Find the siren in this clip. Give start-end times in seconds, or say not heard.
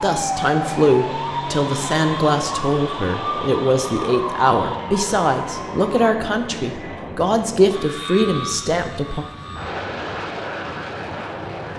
0.0-6.1.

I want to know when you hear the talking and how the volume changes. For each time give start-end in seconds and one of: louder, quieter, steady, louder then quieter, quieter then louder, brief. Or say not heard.
0.0-9.2 steady.